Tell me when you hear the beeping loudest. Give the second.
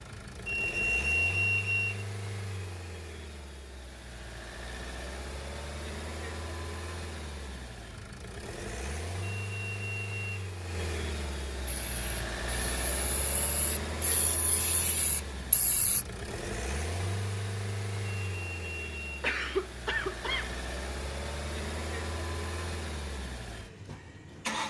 1 s.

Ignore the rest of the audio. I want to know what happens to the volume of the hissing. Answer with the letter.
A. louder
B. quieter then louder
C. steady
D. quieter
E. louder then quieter
A.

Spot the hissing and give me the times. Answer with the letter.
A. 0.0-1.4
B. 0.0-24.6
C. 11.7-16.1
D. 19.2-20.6
C.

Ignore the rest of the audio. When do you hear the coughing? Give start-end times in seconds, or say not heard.
19.2-20.6.